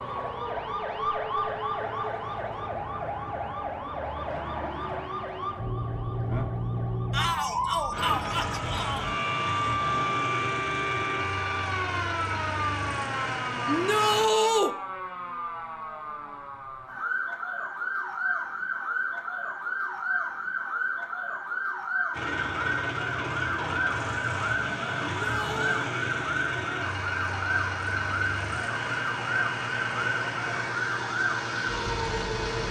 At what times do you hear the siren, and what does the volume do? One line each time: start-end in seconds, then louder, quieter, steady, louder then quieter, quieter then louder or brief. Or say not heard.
0.0-32.6 steady.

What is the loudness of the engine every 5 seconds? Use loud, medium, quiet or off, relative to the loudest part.
off, loud, loud, off, loud, loud, loud.